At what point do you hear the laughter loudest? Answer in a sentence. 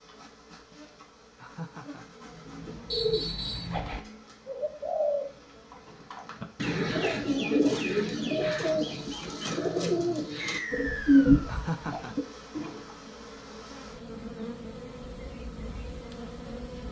The volume of the laughter peaks at 12 seconds.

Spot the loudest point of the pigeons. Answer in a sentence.
The volume of the pigeons peaks at 11 seconds.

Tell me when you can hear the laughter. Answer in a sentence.
The laughter can be heard from 1.4 to 2.0 s and from 11.4 to 12.2 s.